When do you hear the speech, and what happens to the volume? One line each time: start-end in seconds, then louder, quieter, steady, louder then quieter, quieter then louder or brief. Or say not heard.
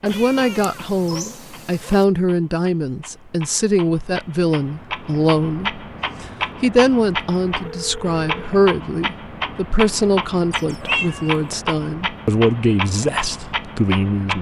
0.0-14.3 steady.